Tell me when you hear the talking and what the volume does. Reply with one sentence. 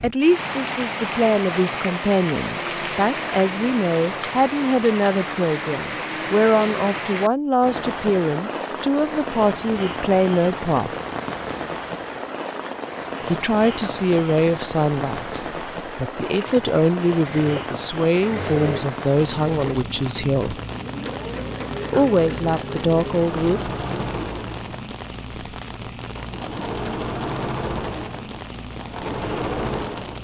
You can hear the talking from 0.0 to 10.9 s, at a steady volume; from 13.2 to 20.6 s, getting quieter then louder; and briefly from 21.9 to 23.8 s.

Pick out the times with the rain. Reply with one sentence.
The rain can be heard from 0.0 to 30.1 s.